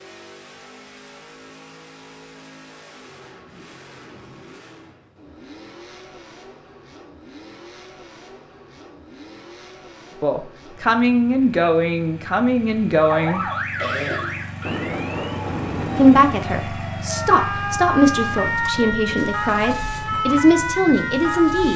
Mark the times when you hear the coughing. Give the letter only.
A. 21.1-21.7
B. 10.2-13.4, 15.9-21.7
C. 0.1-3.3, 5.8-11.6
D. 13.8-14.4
D.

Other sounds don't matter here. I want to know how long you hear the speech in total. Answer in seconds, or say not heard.
9 s.